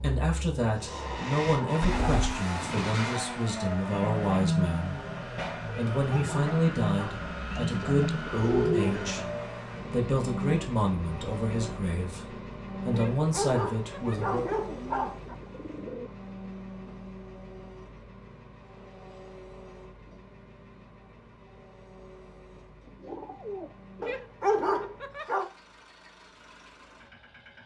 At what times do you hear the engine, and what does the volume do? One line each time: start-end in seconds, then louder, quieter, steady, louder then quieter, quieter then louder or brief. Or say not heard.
0.0-27.6 quieter.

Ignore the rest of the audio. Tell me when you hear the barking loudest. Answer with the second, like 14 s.
25 s.